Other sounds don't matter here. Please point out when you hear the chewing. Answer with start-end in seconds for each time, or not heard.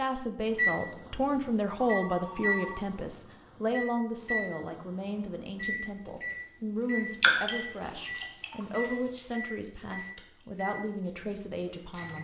7.2-12.2.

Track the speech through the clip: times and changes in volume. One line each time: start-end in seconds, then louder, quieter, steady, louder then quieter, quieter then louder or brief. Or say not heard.
0.0-12.2 quieter.